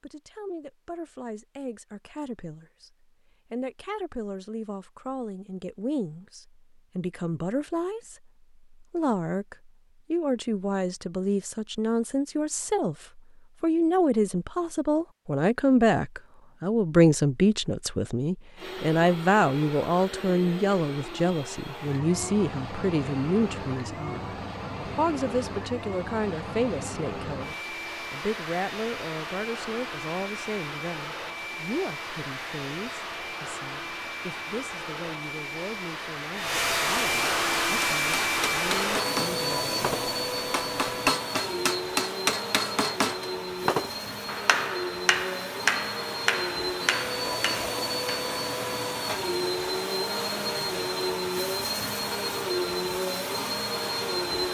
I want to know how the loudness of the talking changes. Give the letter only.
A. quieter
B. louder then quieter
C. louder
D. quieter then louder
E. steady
B.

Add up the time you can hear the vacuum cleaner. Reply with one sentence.
You can hear the vacuum cleaner for 36 seconds altogether.